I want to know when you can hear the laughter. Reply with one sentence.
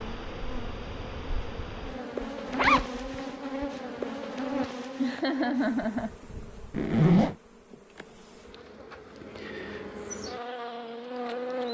The laughter can be heard from 5.0 to 6.2 s.